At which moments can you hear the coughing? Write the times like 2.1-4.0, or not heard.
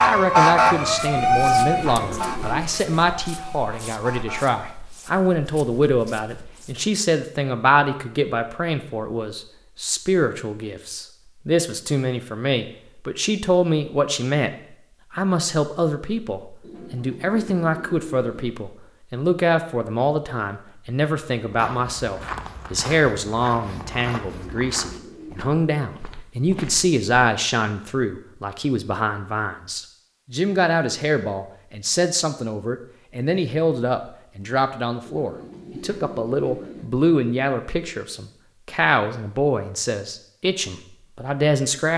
not heard.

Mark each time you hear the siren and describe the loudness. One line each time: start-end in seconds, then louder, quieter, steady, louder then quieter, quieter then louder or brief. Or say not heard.
0.0-4.6 quieter.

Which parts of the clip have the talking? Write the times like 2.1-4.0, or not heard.
0.0-14.5, 15.1-41.9.